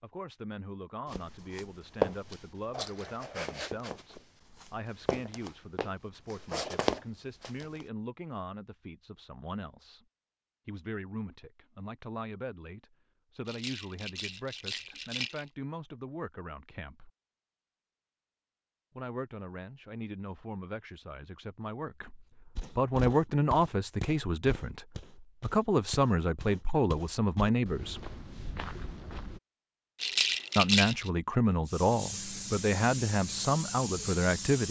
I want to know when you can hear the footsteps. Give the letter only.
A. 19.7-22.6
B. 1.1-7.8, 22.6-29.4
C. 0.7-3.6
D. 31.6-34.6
B.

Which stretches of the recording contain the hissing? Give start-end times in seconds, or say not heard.
31.6-34.6.